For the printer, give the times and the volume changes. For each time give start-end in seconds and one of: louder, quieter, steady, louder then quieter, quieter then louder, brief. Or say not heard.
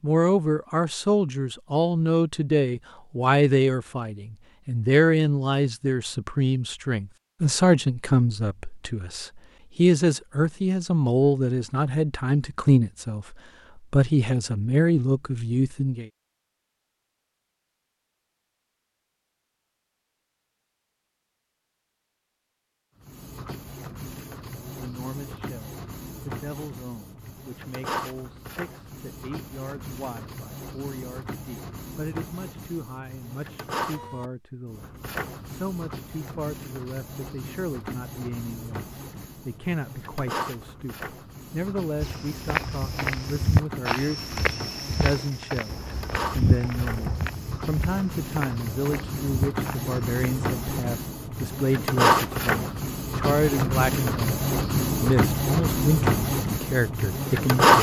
23.0-57.7 louder.